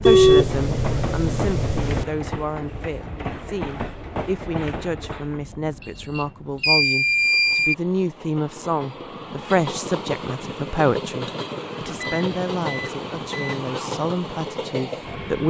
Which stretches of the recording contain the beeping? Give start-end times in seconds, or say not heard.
0.1-2.0, 5.8-7.8, 11.9-13.7.